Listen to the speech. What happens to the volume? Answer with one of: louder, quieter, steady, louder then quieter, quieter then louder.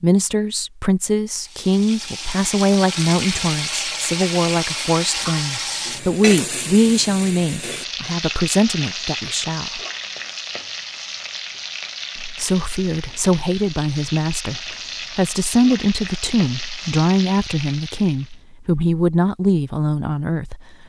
steady.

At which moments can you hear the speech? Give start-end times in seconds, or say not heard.
0.0-9.8, 12.2-20.6.